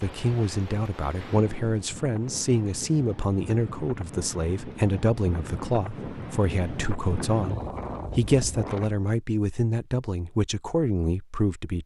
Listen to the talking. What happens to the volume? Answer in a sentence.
The volume of the talking stays about the same.